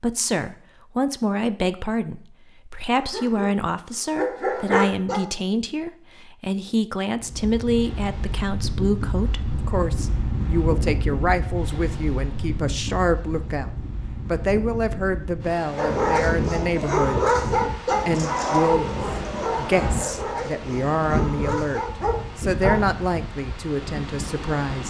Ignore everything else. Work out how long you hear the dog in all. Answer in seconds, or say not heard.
9 s.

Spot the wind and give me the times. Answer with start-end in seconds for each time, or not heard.
7.2-24.8.